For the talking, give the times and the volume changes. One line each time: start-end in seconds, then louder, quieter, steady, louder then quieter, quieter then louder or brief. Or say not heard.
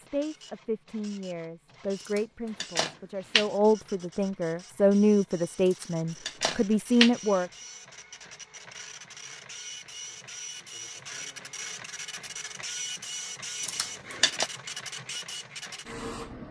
0.0-7.5 louder.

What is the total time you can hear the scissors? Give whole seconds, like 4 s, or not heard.
4 s.